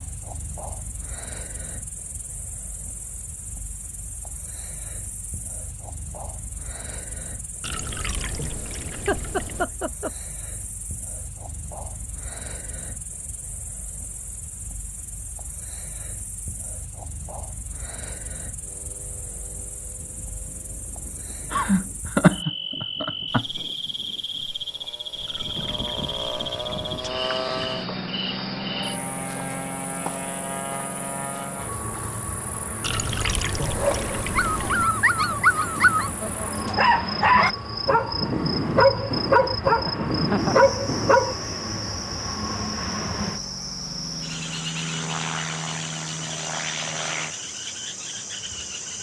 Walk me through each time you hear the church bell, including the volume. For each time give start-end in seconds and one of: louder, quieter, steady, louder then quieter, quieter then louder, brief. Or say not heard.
not heard.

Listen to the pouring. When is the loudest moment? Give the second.
33 s.